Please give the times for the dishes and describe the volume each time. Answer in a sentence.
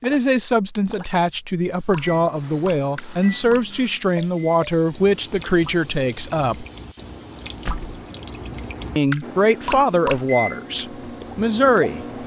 You can't hear the dishes here.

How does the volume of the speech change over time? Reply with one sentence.
The loudness of the speech stays about the same.